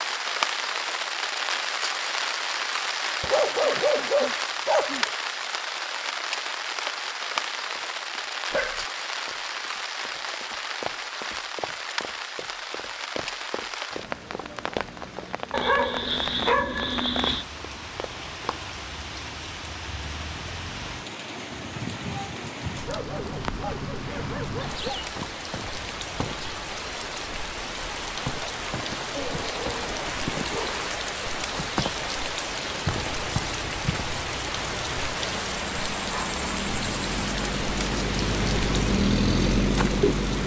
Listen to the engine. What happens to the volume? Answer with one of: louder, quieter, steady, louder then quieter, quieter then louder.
louder.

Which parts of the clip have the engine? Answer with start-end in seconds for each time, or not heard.
33.0-40.4.